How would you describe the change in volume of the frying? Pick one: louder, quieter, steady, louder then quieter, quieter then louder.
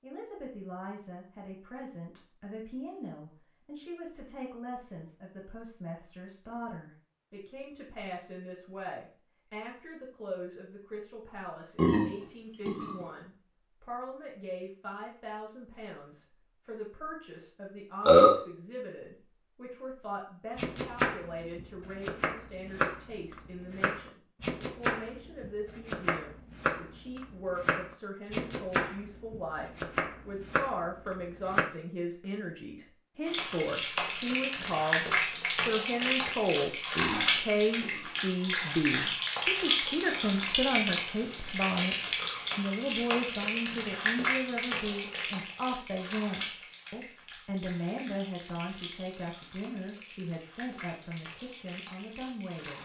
quieter.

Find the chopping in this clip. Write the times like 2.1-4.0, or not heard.
20.6-31.7.